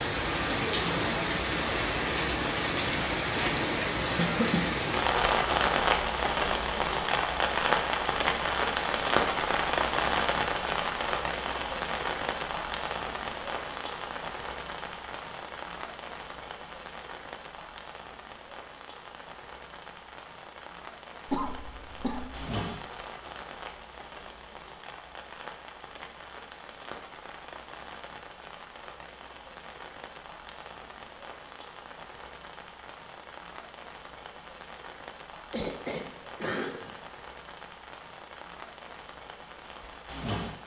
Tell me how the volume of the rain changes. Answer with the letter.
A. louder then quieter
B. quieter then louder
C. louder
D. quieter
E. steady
D.